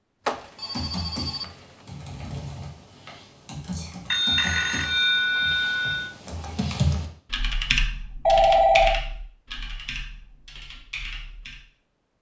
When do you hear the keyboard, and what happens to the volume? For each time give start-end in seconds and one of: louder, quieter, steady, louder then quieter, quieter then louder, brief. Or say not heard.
0.3-11.6 louder then quieter.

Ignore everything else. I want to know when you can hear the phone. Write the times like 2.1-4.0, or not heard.
0.2-1.4, 4.1-6.1, 8.2-9.0.